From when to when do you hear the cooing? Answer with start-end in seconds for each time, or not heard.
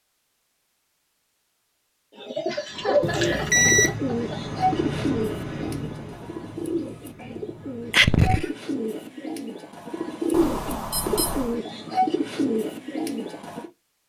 2.1-13.7.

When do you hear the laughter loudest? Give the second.
8 s.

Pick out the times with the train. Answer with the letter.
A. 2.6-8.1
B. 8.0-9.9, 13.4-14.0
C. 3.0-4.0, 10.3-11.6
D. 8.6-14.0
A.